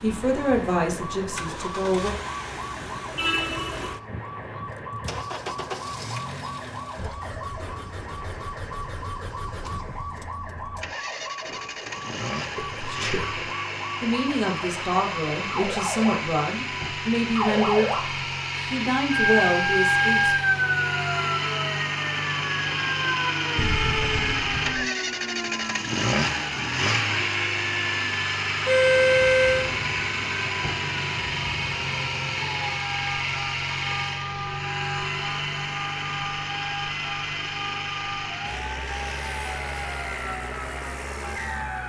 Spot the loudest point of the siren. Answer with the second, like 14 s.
20 s.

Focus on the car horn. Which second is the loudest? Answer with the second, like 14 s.
29 s.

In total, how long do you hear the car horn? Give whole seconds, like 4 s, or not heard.
3 s.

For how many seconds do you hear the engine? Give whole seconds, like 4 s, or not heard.
42 s.